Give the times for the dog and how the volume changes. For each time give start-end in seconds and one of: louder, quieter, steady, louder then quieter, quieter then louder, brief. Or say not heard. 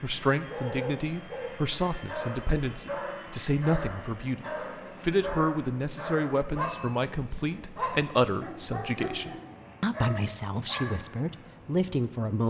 0.5-11.5 steady.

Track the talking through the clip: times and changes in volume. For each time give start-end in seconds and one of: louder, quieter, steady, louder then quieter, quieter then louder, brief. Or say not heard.
0.0-12.4 steady.